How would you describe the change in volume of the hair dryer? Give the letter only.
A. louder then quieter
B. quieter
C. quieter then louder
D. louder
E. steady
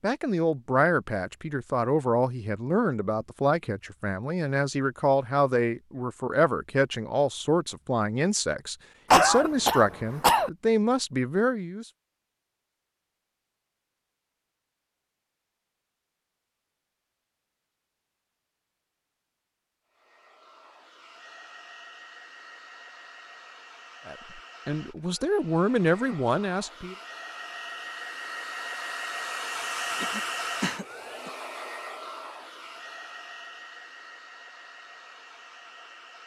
A.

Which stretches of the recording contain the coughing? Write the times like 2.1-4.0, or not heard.
9.1-10.5, 29.6-31.3.